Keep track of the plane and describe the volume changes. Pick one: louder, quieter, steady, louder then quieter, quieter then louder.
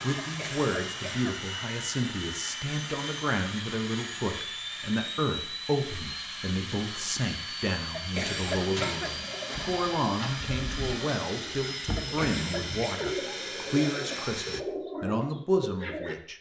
steady.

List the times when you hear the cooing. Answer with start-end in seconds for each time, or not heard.
8.4-16.1.